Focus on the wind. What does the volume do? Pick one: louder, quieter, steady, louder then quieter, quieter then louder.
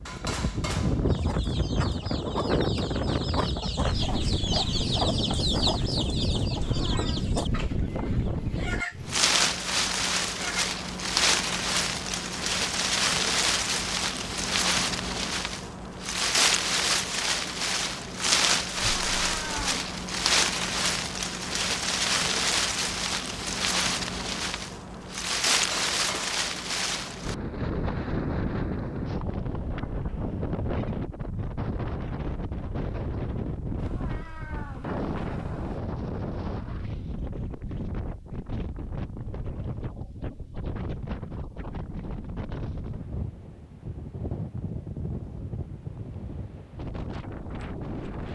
quieter.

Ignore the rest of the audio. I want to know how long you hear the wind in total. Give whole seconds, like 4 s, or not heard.
48 s.